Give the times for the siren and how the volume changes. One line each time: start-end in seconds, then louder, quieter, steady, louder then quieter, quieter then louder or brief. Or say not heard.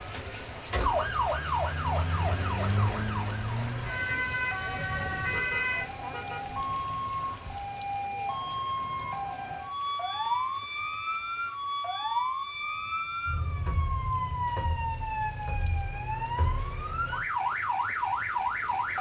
0.0-18.9 steady.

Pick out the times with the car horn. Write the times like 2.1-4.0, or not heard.
5.3-6.5.